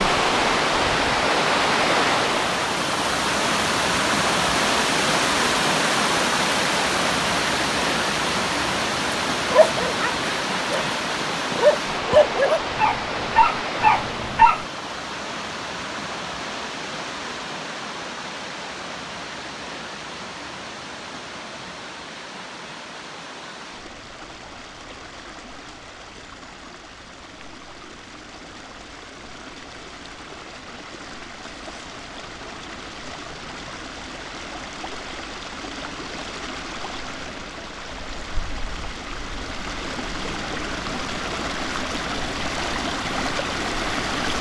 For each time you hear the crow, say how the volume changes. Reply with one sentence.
You can't hear the crow here.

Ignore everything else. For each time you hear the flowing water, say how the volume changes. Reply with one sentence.
The flowing water can be heard from 0.0 to 44.3 s, getting quieter then louder.